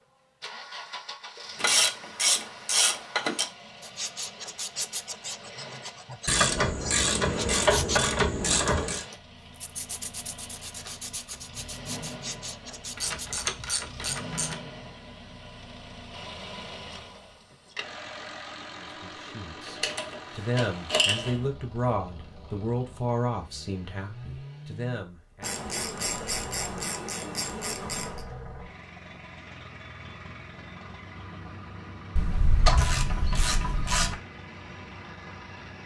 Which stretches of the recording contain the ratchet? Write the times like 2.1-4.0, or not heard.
1.6-3.5, 6.2-9.1, 12.9-14.6, 19.6-21.4, 25.4-28.2, 32.1-34.1.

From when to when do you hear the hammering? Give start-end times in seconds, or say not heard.
not heard.